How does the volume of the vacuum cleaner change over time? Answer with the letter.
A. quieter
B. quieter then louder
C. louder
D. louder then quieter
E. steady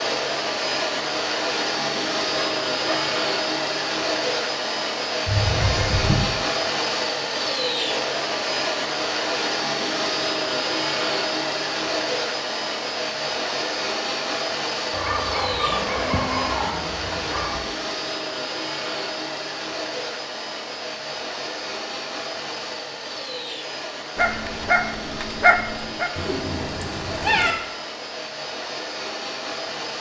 A.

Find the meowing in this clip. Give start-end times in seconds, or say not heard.
5.2-6.2, 26.1-27.6.